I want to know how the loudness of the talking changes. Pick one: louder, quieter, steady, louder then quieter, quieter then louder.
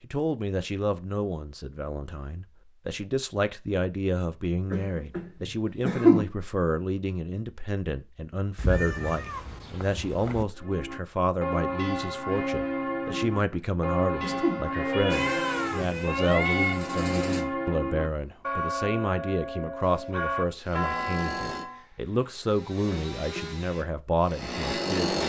steady.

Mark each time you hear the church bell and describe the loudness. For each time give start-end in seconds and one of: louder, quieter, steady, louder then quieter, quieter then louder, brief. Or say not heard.
10.6-21.9 steady.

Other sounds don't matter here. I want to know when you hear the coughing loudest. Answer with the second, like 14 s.
6 s.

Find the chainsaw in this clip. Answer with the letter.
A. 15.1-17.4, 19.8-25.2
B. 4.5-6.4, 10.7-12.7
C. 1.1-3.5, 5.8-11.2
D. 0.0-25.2
A.